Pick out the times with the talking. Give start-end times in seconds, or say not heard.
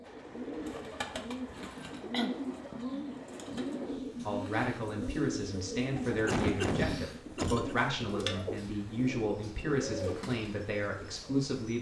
4.2-11.7.